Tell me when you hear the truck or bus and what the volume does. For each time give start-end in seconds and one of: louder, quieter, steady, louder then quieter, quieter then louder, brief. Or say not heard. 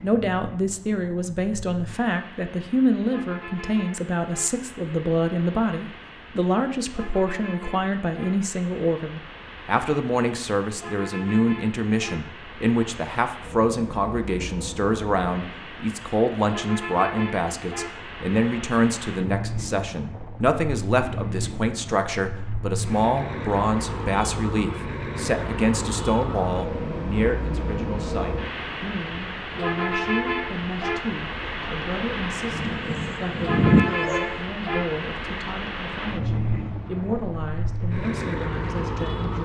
0.0-39.4 louder.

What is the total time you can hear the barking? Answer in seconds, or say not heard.
2 s.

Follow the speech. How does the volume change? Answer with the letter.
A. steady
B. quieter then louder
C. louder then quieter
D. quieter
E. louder
D.